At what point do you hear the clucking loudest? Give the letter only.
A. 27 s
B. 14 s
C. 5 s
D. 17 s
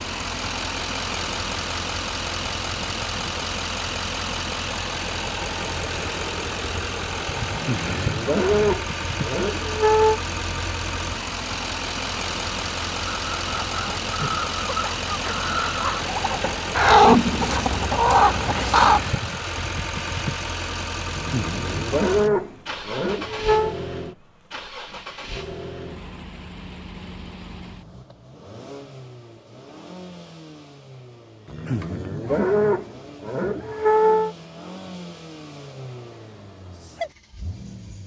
D.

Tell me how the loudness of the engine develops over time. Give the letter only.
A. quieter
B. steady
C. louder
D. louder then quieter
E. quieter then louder
A.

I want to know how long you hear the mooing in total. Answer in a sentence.
The mooing can be heard for 8 seconds in total.